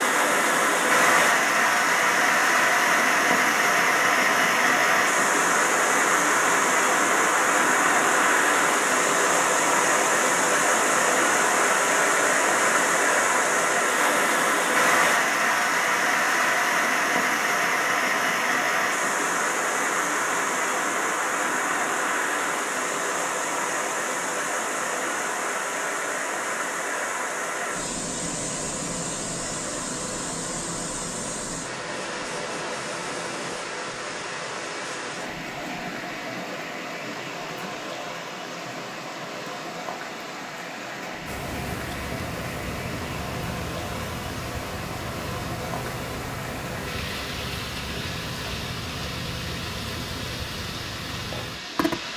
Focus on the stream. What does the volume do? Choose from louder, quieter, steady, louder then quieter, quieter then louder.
quieter.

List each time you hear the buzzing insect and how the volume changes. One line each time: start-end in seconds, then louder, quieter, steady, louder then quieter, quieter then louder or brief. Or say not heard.
41.2-52.1 steady.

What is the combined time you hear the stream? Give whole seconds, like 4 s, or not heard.
52 s.